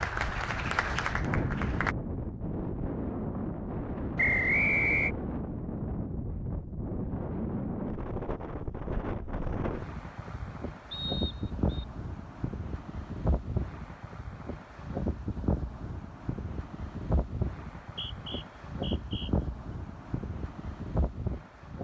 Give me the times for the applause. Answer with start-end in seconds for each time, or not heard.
0.0-1.9.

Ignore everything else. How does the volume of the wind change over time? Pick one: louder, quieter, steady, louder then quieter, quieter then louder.
steady.